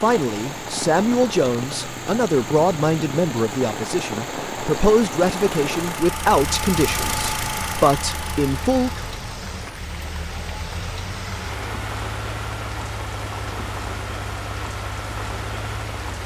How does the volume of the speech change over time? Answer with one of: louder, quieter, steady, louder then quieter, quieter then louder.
steady.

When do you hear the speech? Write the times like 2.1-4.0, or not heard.
0.0-9.0.